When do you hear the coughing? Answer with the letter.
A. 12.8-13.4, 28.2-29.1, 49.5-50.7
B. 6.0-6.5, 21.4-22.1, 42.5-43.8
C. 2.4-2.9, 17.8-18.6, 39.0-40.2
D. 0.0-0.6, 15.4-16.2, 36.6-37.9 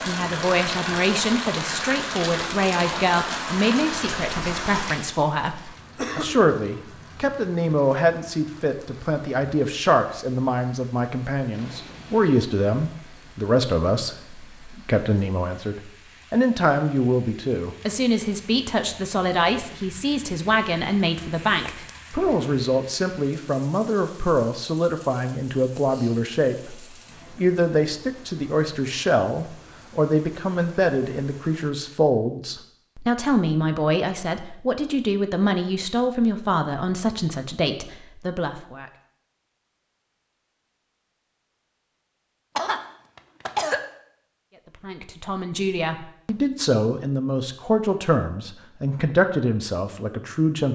B.